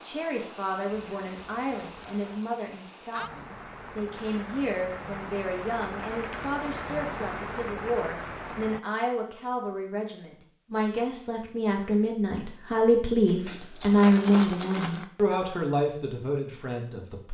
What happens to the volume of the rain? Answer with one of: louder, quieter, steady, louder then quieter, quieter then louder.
louder.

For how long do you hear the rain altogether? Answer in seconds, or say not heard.
9 s.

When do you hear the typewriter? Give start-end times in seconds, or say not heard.
not heard.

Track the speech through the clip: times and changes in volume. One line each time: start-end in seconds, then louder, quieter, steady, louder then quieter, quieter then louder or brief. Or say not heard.
0.0-17.3 louder.